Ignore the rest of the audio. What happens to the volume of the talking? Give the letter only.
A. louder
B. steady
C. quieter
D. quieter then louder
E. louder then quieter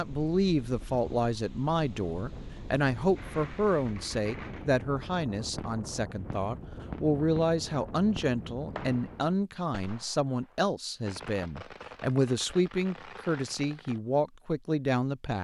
B.